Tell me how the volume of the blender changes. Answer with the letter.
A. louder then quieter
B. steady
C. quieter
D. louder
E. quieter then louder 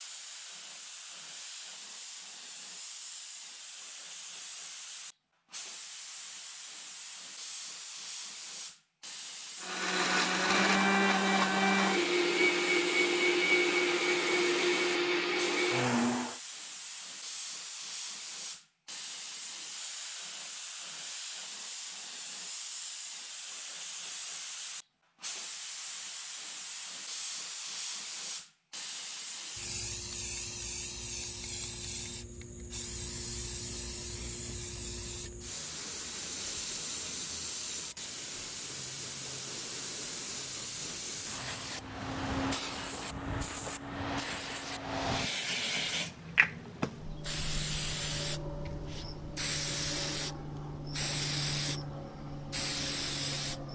B.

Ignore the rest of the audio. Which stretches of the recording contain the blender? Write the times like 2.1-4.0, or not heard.
9.6-16.4.